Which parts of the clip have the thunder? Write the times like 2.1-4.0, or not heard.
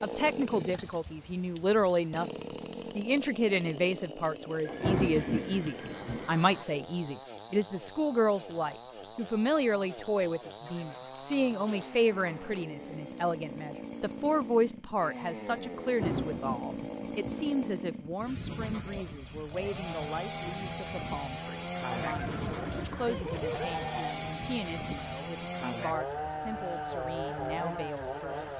4.7-6.3, 15.8-17.4.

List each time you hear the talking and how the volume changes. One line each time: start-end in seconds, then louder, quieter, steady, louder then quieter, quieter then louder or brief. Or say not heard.
0.0-2.3 brief
3.0-28.5 quieter.